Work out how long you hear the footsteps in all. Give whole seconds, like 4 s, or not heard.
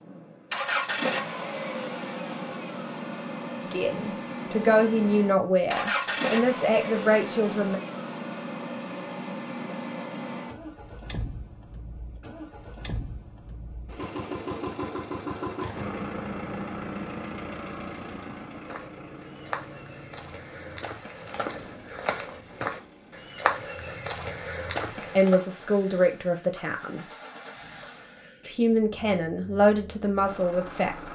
7 s.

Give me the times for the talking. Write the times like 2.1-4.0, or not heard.
3.6-7.8, 25.1-27.1, 28.4-30.9.